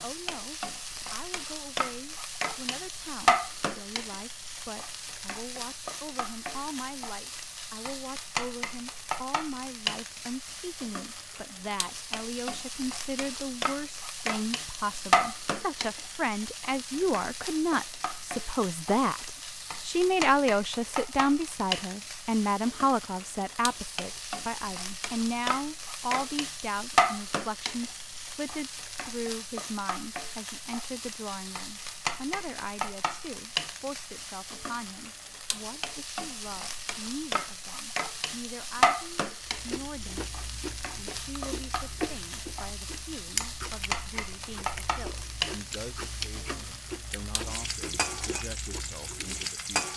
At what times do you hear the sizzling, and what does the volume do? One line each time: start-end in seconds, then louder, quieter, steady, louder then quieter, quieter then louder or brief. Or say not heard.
0.0-49.9 steady.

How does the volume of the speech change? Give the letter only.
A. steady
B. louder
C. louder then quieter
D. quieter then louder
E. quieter
C.